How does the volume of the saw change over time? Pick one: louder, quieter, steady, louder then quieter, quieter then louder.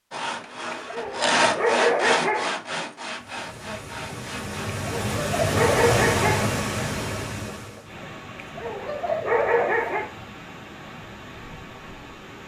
louder then quieter.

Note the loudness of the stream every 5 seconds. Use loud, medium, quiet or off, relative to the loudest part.
medium, loud, quiet.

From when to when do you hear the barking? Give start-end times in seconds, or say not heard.
0.7-2.5, 4.8-6.5, 8.4-10.1.